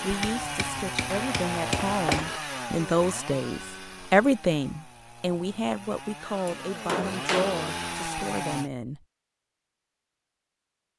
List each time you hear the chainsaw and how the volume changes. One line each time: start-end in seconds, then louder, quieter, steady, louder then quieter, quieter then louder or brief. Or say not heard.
0.0-8.7 quieter then louder.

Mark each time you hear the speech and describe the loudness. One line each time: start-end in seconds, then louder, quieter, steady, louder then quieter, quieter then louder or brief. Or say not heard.
0.0-9.0 louder then quieter.